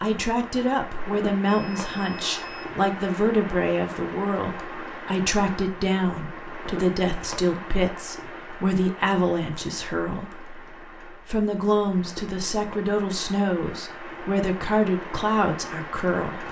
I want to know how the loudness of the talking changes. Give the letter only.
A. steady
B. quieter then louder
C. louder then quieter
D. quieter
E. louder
A.